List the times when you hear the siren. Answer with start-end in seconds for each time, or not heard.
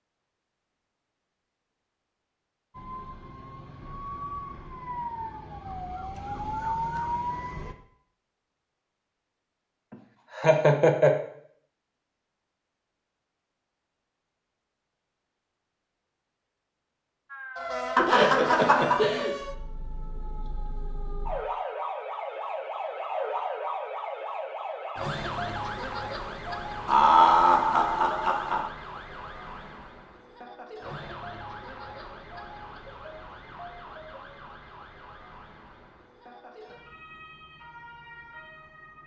2.7-7.8, 17.3-39.0.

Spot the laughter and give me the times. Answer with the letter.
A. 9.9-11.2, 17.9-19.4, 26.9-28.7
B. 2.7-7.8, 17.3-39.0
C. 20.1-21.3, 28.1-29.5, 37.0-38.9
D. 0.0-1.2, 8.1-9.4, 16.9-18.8
A.